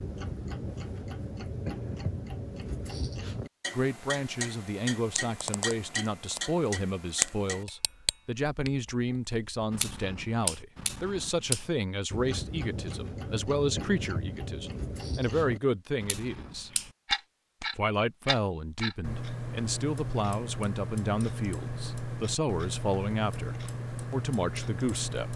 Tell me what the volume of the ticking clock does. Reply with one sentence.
The loudness of the ticking clock stays about the same.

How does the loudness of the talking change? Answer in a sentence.
The loudness of the talking stays about the same.